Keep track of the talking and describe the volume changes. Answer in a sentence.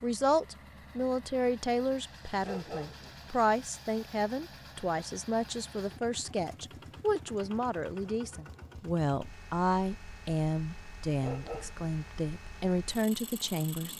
The loudness of the talking stays about the same.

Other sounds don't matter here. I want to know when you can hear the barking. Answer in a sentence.
The barking can be heard from 2.4 to 3.5 s and from 11.2 to 12.2 s.